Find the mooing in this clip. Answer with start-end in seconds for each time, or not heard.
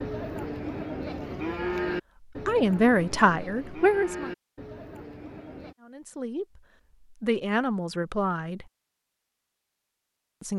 0.0-5.8.